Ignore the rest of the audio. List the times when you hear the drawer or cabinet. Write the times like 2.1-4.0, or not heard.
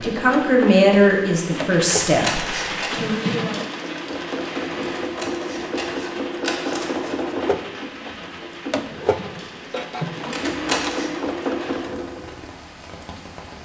2.9-3.7, 8.8-10.2.